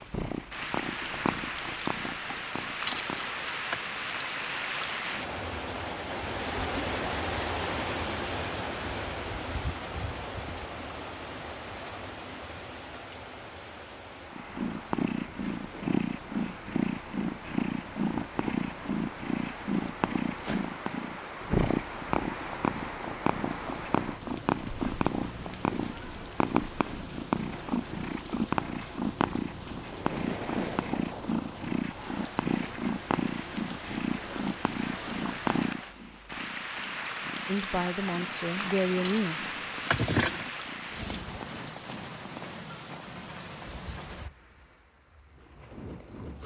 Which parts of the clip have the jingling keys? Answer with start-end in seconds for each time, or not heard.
2.9-3.8, 39.0-40.5.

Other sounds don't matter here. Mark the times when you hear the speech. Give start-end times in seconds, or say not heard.
37.5-39.6.